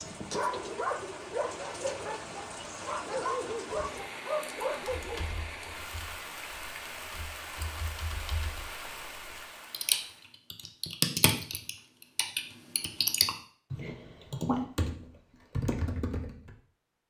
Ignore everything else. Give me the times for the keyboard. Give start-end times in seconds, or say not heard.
4.8-16.6.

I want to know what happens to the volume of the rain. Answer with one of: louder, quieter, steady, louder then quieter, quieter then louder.
steady.